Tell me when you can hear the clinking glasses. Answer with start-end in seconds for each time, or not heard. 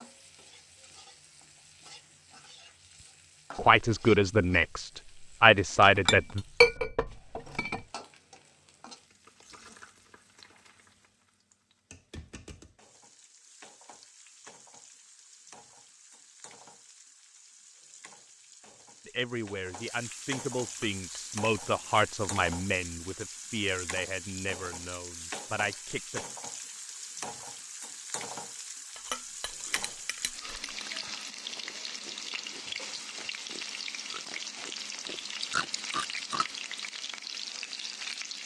5.8-7.8, 20.6-21.4, 28.9-30.9.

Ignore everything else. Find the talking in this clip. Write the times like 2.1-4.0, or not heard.
3.5-6.5, 19.1-26.2.